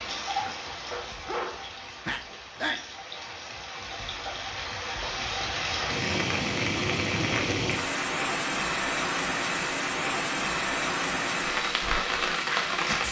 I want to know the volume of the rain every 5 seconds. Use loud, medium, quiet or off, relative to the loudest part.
medium, loud, loud.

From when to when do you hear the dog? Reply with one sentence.
You can hear the dog from 0.9 to 2.8 s.